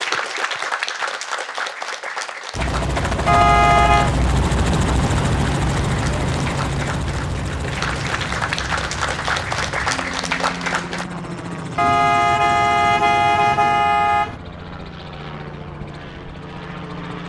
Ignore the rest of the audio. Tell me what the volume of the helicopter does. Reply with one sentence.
The volume of the helicopter goes down.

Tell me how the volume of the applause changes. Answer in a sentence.
The volume of the applause goes down, then up.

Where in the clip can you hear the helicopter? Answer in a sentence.
You can hear the helicopter from 2.5 to 17.2 s.